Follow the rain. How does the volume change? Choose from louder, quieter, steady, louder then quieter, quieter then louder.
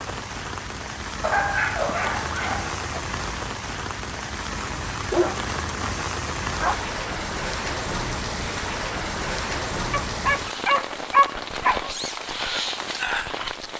steady.